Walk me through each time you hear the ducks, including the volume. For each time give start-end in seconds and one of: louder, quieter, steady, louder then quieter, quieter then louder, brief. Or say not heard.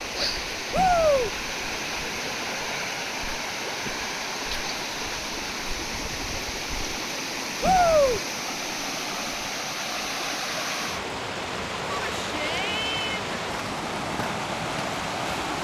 not heard.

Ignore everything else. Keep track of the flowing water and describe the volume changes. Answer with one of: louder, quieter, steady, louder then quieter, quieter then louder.
steady.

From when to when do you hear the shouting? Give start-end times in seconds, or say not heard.
0.7-1.3, 7.6-8.2, 11.8-13.3.